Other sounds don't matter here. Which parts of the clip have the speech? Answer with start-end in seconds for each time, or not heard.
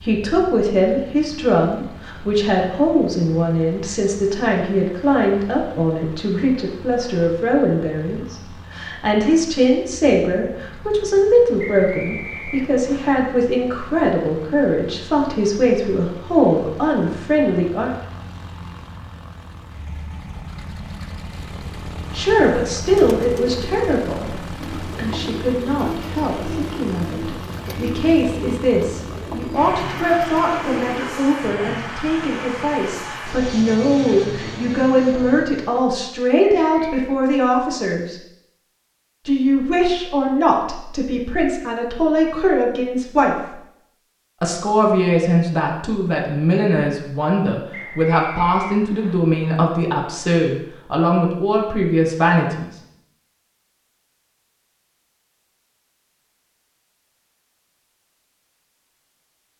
0.0-17.9, 22.1-38.2, 39.2-43.5, 44.4-52.7.